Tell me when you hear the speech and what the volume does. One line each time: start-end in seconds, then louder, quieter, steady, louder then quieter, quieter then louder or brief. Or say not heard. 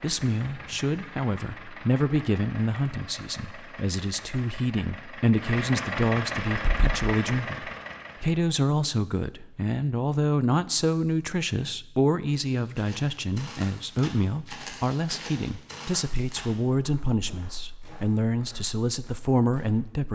0.0-20.1 steady.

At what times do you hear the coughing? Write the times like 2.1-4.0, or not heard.
not heard.